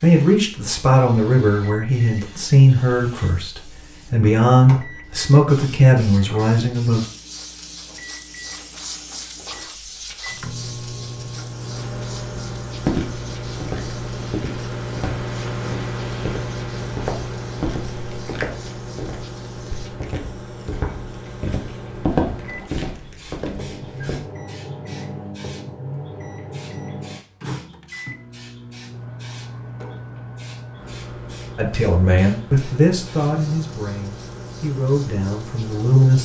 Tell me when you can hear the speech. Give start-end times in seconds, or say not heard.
0.0-7.0, 31.6-36.2.